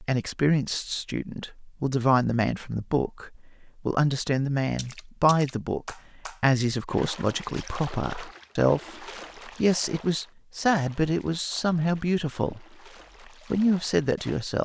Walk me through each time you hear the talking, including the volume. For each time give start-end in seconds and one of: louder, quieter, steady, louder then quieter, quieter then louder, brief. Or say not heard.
0.0-12.7 steady
13.5-14.6 brief.